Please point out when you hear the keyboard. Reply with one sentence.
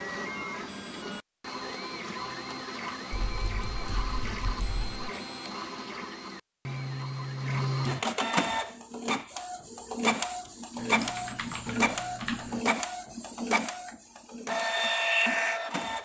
You can hear the keyboard from 3.1 to 5.1 s and from 10.8 to 12.6 s.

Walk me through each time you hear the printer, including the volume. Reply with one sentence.
You can hear the printer from 0.0 to 16.0 s, getting louder.